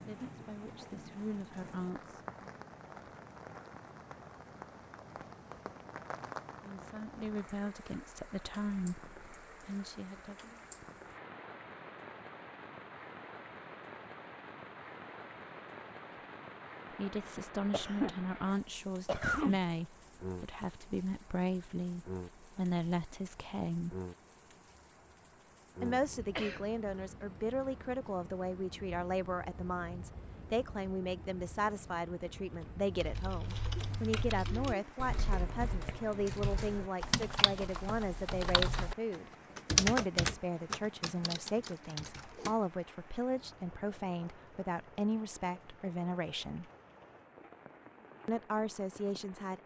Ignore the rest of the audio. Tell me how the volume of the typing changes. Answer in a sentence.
The volume of the typing goes up, then down.